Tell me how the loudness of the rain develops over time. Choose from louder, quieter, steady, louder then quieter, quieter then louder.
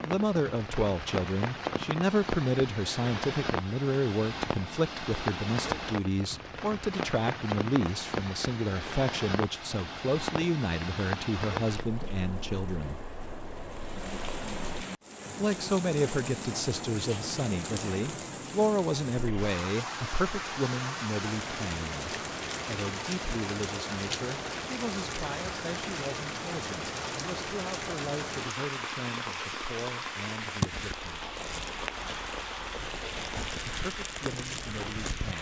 steady.